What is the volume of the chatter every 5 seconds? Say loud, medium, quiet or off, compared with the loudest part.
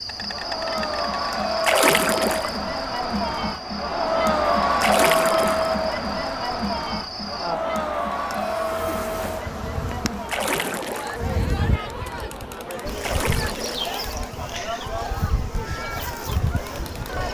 loud, loud, medium, medium.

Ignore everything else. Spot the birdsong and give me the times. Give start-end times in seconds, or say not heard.
not heard.